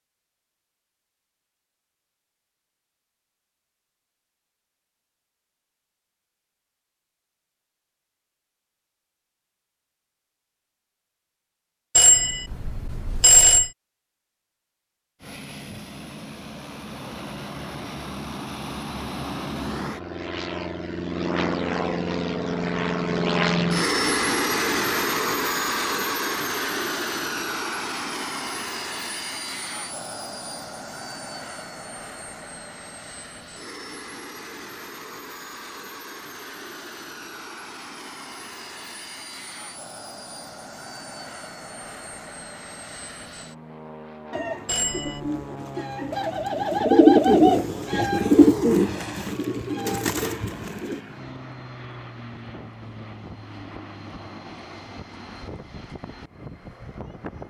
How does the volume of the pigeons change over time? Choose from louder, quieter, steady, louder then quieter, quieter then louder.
louder then quieter.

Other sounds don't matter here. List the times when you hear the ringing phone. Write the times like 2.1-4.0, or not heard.
11.9-13.7, 44.6-45.3.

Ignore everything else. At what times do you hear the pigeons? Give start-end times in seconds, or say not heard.
44.3-51.0.